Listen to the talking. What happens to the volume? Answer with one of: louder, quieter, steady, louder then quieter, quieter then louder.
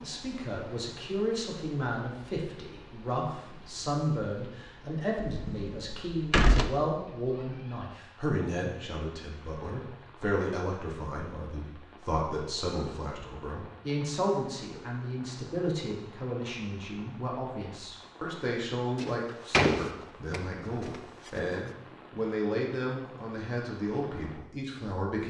steady.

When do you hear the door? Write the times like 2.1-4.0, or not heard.
5.2-6.7, 18.9-21.3.